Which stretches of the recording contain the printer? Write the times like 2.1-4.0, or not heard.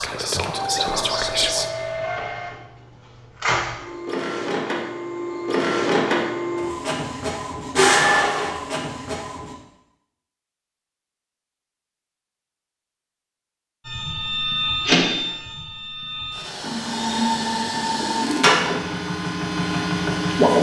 0.0-9.6, 13.8-20.5.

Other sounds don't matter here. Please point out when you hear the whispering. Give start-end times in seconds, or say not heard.
0.0-1.7.